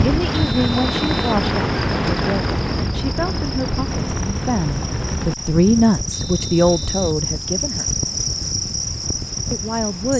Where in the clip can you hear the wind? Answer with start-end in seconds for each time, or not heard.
0.0-10.1.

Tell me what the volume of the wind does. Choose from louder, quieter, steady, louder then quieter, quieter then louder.
quieter.